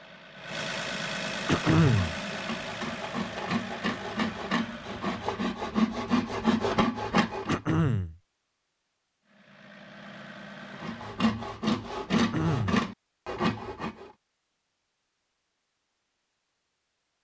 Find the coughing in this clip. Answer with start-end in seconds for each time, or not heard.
1.4-2.1, 7.5-8.2, 12.2-12.8.